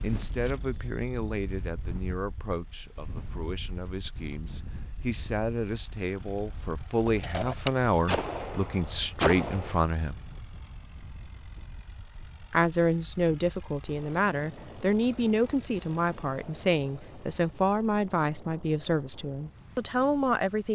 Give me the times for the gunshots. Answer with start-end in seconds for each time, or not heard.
7.0-9.8.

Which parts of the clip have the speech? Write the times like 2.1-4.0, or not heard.
0.0-10.2, 12.5-20.7.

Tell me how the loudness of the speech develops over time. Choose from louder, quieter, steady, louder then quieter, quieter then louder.
louder.